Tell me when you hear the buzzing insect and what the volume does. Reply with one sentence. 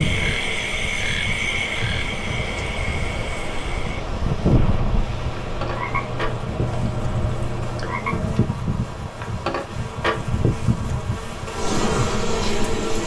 The buzzing insect can be heard from 0.2 to 13.0 s, getting louder.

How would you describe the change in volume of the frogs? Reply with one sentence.
The volume of the frogs goes down, then up.